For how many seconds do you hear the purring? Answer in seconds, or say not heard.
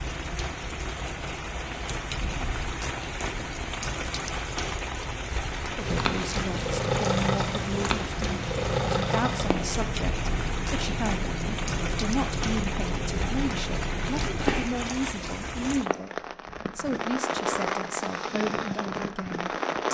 9 s.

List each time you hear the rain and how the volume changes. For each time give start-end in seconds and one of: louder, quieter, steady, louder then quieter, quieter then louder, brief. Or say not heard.
0.0-19.8 steady.